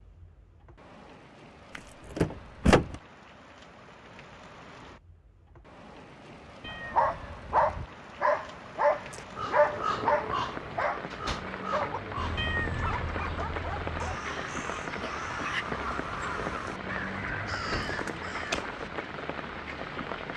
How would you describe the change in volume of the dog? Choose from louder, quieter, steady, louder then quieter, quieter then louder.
quieter.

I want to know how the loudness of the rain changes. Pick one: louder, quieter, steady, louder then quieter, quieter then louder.
louder.